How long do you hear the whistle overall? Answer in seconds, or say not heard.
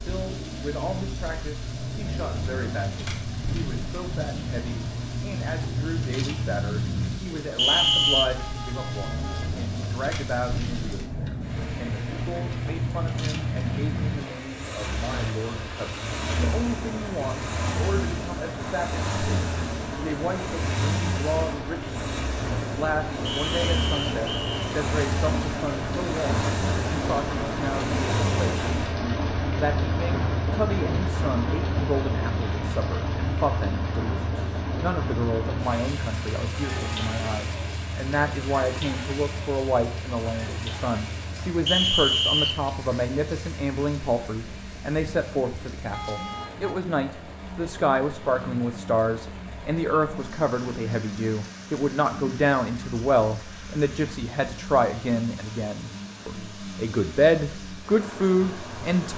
3 s.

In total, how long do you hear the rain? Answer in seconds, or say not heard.
59 s.